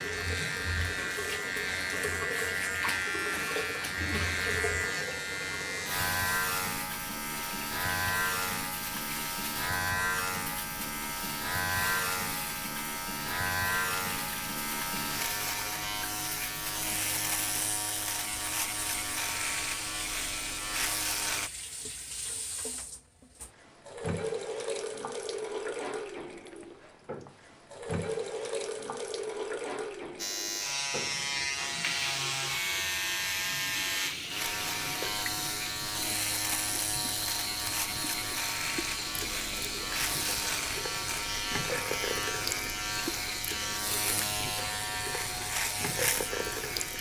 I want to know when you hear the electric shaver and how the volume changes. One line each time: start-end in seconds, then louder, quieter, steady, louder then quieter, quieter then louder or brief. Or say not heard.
0.0-21.5 steady
30.1-46.9 steady.